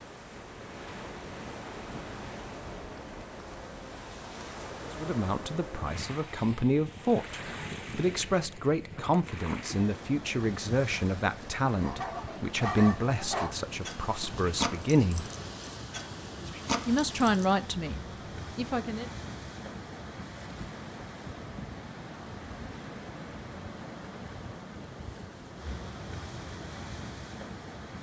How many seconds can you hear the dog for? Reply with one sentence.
You can hear the dog for 6 seconds altogether.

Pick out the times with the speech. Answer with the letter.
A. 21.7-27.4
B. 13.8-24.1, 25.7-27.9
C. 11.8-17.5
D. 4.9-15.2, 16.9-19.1
D.